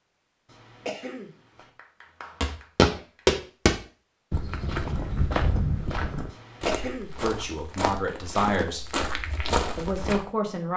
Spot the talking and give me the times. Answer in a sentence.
You can hear the talking from 7.2 to 8.8 s and from 9.8 to 10.7 s.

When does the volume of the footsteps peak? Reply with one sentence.
The loudest moment of the footsteps is at 3 seconds.